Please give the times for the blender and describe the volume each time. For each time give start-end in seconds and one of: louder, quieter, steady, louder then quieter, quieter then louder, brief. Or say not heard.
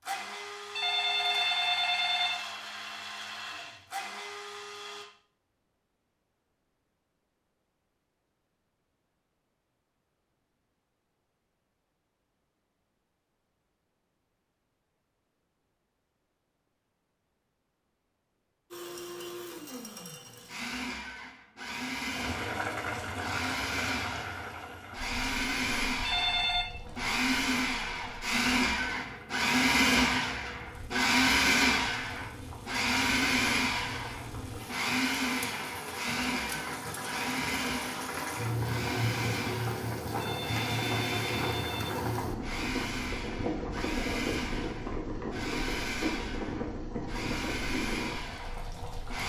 0.0-5.0 steady
18.7-49.2 louder then quieter.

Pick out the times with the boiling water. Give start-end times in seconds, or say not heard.
22.1-49.2.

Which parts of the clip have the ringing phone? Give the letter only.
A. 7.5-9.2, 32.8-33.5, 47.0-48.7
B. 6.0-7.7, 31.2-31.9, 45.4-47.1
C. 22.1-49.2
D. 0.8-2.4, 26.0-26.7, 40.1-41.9
D.